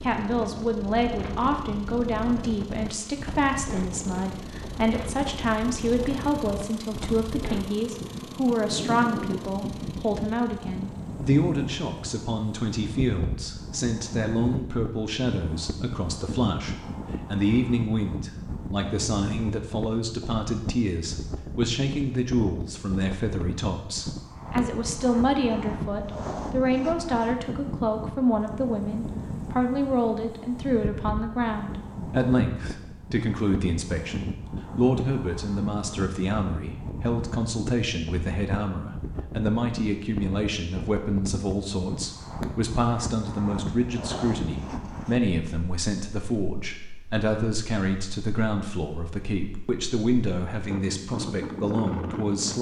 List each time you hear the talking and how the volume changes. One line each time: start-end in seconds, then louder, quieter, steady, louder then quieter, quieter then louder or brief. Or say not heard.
0.0-52.5 steady.